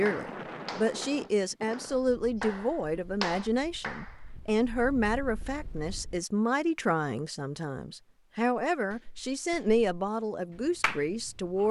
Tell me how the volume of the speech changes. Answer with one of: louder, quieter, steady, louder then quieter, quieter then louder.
steady.